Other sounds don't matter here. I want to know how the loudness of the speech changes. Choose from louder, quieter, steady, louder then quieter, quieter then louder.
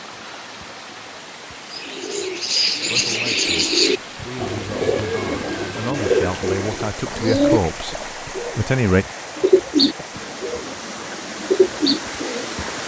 louder.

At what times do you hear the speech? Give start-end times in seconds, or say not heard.
2.9-9.1.